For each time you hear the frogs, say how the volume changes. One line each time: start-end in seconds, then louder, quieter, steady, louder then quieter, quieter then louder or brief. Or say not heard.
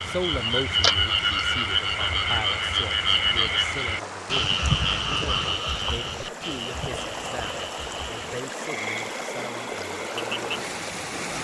0.0-11.3 quieter.